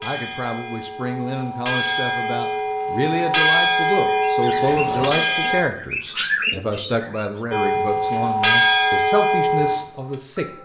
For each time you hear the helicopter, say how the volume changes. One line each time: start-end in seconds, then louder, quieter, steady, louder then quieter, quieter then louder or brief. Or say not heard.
not heard.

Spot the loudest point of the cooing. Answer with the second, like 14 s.
6 s.